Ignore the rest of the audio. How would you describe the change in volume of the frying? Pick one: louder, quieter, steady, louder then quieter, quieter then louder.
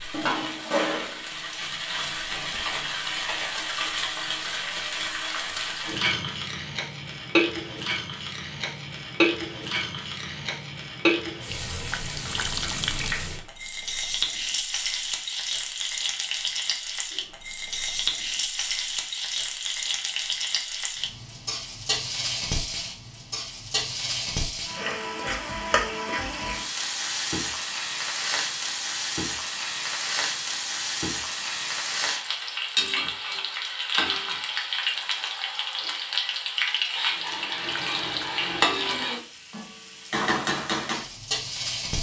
steady.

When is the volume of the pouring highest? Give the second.
13 s.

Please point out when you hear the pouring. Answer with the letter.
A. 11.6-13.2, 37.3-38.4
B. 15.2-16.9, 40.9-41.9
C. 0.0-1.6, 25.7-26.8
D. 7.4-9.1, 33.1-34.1
A.